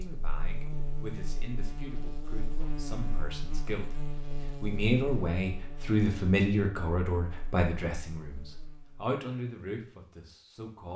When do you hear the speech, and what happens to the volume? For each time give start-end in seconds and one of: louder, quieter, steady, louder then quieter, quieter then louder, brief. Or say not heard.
0.0-10.9 louder then quieter.